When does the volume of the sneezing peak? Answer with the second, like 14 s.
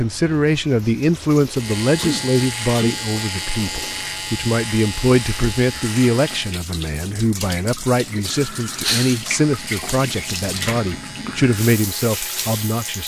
9 s.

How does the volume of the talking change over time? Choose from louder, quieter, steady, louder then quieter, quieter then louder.
steady.